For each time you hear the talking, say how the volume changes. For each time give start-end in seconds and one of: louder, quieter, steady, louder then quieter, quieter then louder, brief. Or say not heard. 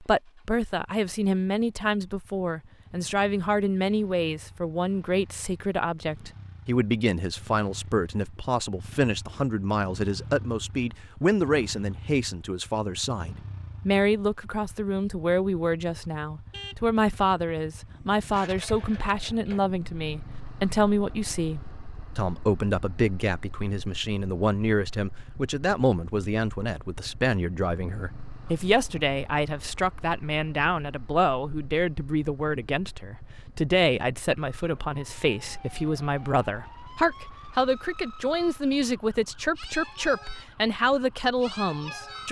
0.0-42.2 steady.